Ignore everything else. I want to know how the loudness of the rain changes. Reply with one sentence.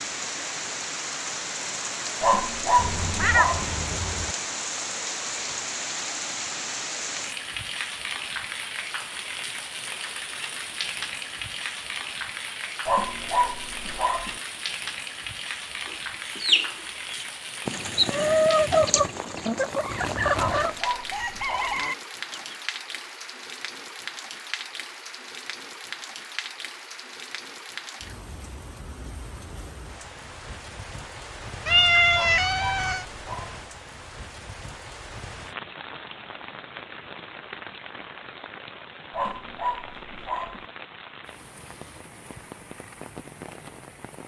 The loudness of the rain goes down.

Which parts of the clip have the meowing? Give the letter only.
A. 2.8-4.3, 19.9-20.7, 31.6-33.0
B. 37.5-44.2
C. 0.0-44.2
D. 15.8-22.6
A.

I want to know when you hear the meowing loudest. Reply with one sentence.
The volume of the meowing peaks at 32 seconds.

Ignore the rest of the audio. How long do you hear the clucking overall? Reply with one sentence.
You can hear the clucking for 7 seconds altogether.